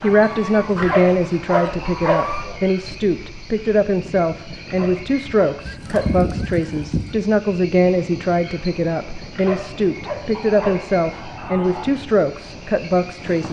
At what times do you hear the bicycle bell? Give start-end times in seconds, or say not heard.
not heard.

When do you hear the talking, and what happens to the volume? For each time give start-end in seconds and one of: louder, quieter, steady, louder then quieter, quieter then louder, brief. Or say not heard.
0.0-13.4 steady.